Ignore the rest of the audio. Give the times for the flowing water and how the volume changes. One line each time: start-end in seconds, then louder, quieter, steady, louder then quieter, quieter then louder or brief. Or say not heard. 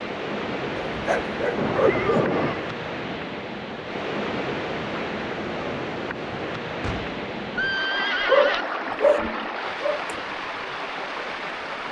0.0-11.8 steady.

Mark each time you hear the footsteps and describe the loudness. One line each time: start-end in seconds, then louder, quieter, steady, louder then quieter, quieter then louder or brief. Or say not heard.
not heard.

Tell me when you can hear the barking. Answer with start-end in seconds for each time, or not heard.
0.8-2.2, 8.2-10.2.